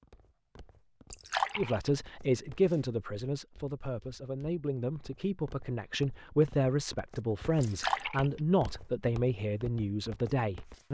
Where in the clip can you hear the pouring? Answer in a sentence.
You can hear the pouring from 1.1 to 2.0 s and from 7.6 to 8.3 s.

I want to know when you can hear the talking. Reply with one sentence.
You can hear the talking from 1.6 to 10.8 s.